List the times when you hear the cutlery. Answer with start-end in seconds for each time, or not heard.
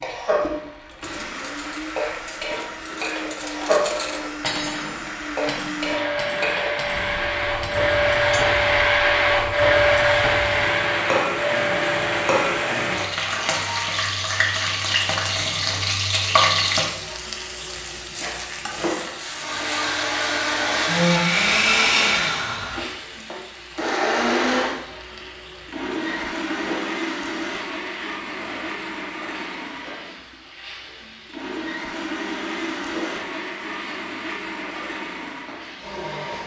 0.9-8.4.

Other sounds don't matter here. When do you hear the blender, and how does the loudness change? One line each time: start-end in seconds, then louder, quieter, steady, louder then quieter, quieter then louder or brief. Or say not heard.
0.0-13.9 louder then quieter
19.2-36.4 quieter.